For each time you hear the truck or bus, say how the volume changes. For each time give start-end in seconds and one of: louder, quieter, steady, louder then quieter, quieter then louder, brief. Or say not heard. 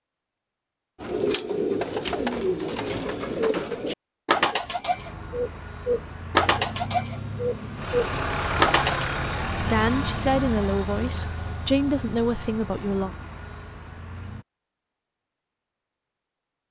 5.0-14.4 louder then quieter.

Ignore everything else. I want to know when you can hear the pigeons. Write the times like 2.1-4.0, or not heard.
1.0-9.1.